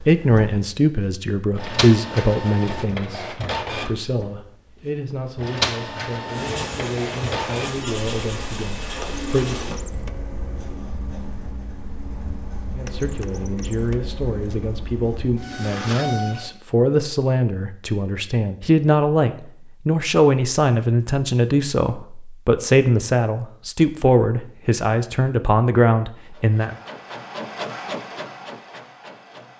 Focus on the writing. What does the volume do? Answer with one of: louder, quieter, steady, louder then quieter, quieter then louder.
quieter.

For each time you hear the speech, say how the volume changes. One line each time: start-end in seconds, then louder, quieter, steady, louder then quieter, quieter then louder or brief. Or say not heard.
0.0-9.7 quieter
12.8-26.8 louder.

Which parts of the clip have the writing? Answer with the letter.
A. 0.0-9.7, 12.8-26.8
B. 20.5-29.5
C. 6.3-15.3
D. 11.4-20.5
C.